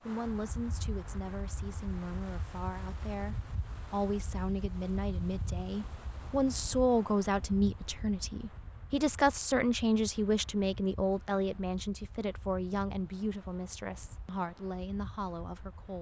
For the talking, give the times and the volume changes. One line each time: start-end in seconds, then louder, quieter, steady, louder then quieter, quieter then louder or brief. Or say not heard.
0.0-15.9 louder then quieter.